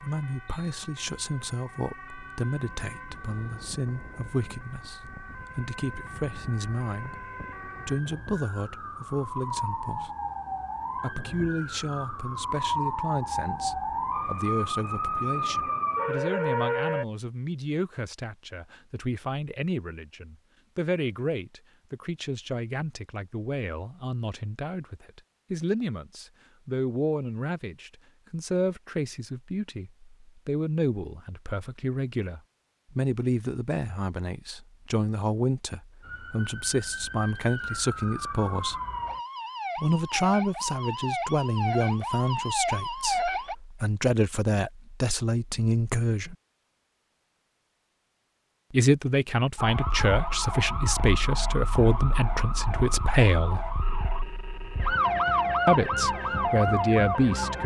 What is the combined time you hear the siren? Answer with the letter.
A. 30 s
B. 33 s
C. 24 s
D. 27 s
B.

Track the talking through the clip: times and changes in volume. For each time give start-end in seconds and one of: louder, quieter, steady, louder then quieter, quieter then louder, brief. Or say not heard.
0.0-10.1 steady
10.9-38.8 steady
39.8-46.4 quieter then louder
48.7-53.7 steady
55.6-57.6 brief.